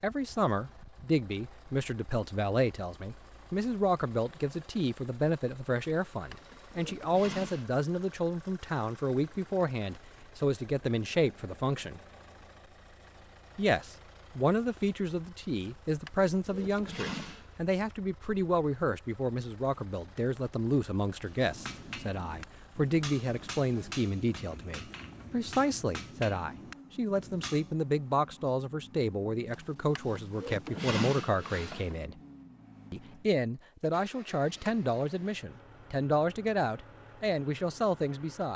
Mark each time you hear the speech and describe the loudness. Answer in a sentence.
The speech can be heard from 0.0 to 12.0 s, at a steady volume; from 13.6 to 32.1 s, at a steady volume; and from 32.9 to 38.5 s, at a steady volume.